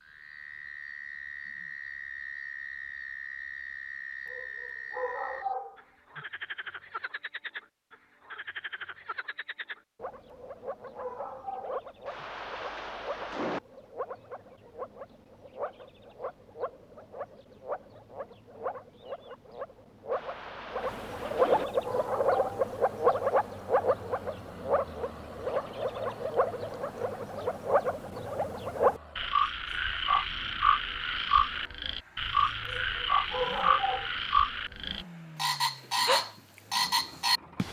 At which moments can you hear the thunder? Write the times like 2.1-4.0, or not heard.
12.1-13.6, 20.1-21.6.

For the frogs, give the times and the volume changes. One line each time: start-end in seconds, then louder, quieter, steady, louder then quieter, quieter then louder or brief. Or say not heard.
0.0-37.6 louder.